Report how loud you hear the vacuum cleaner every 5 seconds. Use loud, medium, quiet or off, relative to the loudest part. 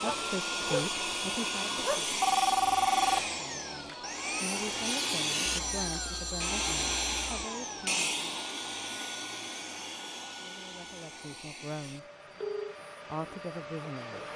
loud, loud, medium.